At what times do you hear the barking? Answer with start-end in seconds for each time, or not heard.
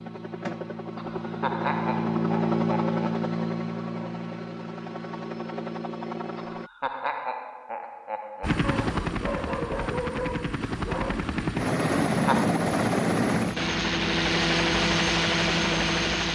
8.6-11.3.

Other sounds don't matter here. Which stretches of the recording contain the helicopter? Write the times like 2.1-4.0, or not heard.
0.0-6.7, 8.4-16.2.